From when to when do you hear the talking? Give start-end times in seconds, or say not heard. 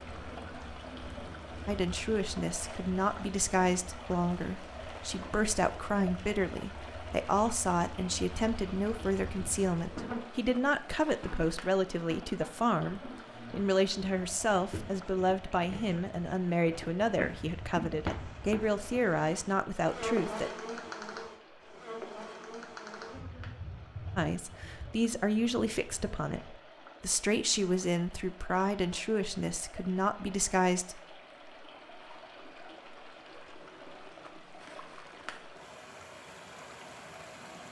1.6-20.5, 24.1-31.0.